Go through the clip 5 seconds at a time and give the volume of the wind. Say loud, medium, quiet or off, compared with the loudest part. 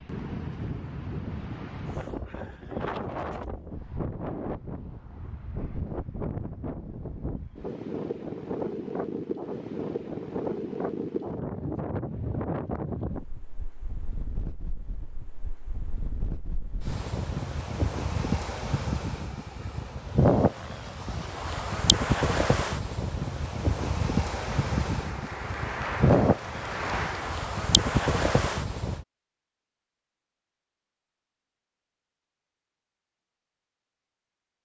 medium, medium, medium, medium, loud, loud, off.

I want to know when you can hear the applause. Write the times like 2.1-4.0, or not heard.
24.4-27.5.